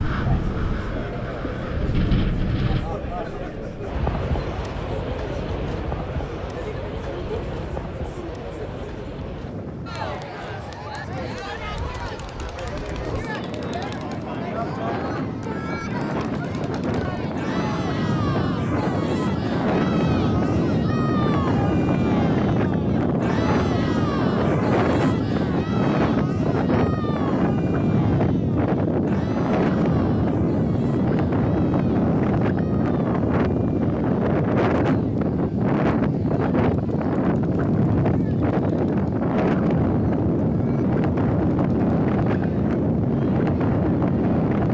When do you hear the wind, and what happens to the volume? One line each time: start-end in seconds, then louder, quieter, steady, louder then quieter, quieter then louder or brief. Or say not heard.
0.0-44.6 louder.